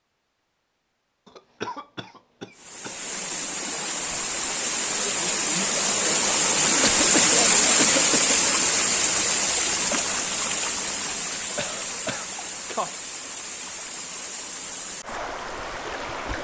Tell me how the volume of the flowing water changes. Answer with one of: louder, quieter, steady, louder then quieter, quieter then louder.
louder then quieter.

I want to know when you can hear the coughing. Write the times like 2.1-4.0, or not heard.
1.2-3.0, 6.8-8.3, 11.6-13.0.